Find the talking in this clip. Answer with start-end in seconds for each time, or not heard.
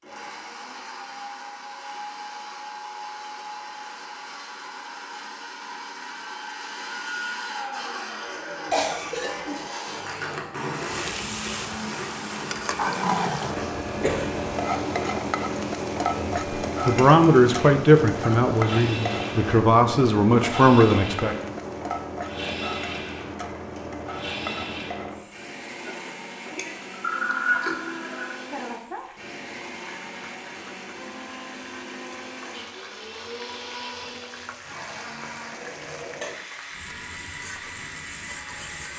16.1-21.4.